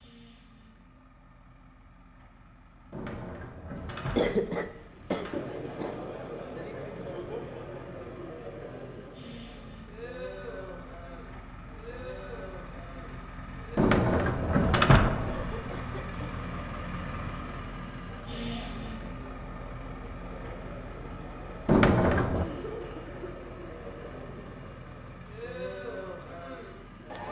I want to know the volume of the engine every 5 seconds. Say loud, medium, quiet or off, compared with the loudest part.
quiet, medium, medium, loud, medium, medium.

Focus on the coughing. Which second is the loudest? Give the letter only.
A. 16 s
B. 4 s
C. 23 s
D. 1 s
B.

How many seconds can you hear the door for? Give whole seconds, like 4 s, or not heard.
5 s.